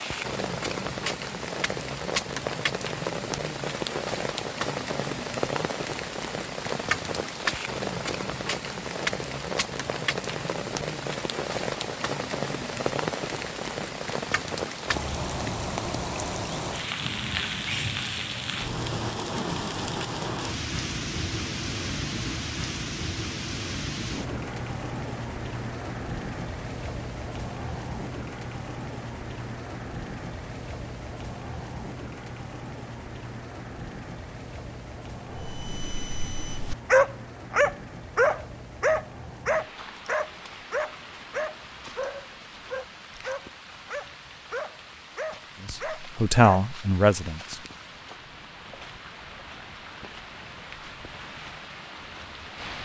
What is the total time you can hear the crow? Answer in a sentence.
You can't hear the crow here.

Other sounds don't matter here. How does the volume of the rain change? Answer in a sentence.
The loudness of the rain goes down.